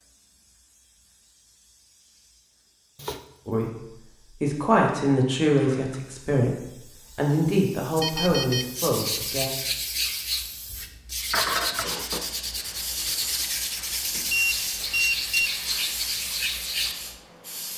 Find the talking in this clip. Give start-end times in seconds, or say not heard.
3.5-9.5.